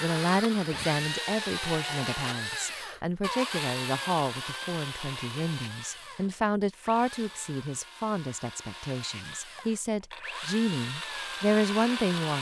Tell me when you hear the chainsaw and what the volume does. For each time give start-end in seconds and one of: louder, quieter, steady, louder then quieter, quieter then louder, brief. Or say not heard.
0.0-12.3 quieter then louder.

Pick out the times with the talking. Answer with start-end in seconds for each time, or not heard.
0.0-12.3.